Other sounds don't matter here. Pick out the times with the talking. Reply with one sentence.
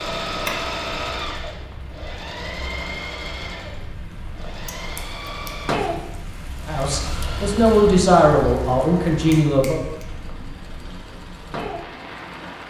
You can hear the talking from 6.7 to 9.8 s.